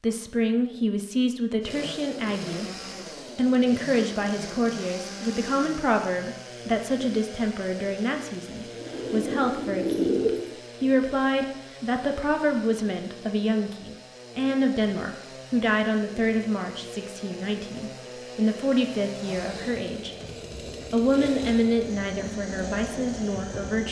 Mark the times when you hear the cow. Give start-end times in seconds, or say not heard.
not heard.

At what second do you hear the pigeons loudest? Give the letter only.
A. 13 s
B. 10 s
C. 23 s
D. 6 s
B.